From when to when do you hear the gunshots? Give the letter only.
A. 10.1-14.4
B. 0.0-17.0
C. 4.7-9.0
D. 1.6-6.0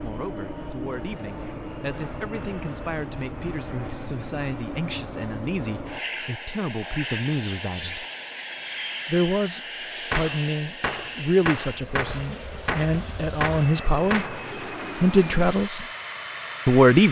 A.